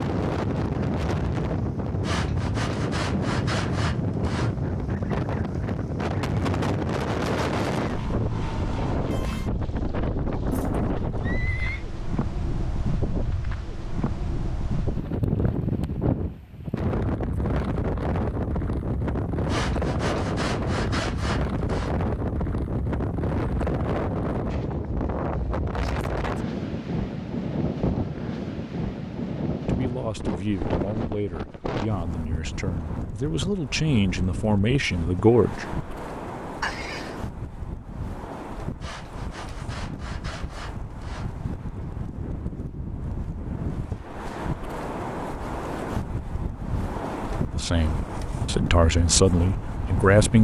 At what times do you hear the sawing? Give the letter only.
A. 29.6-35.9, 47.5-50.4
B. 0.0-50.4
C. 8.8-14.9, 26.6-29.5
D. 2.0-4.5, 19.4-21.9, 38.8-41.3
D.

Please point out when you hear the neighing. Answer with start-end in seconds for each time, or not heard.
10.5-11.8, 36.6-37.1.